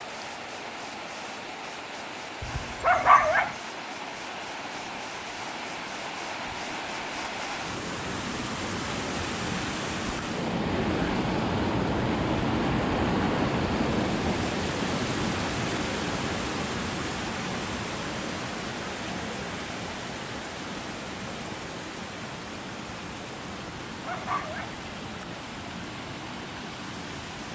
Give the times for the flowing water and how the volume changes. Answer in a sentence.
You can hear the flowing water from 0.0 to 27.4 s, getting louder then quieter.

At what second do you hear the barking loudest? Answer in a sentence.
The volume of the barking peaks at 3 seconds.